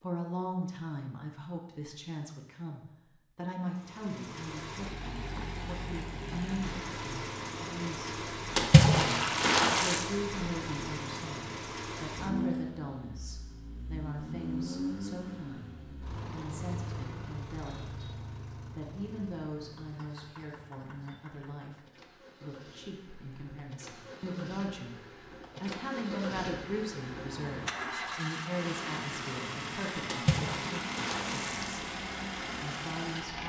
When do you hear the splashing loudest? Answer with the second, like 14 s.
9 s.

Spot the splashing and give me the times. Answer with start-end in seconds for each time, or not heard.
8.6-10.1, 30.1-31.8.